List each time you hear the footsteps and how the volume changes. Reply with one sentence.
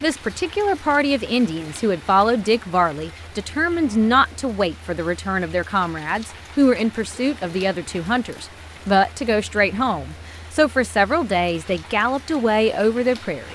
The footsteps can't be heard in this clip.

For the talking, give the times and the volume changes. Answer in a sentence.
The talking can be heard from 0.0 to 13.5 s, at a steady volume.